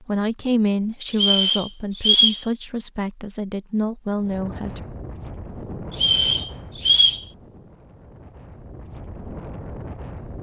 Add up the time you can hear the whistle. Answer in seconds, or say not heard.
3 s.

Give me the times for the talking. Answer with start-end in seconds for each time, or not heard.
0.0-4.8.